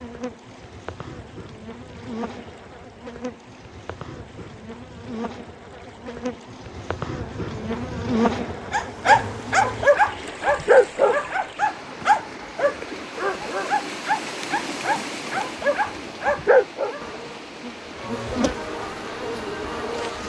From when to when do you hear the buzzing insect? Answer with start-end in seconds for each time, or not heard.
0.0-9.9, 17.0-20.2.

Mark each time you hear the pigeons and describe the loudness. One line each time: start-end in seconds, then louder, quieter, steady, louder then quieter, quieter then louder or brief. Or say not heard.
not heard.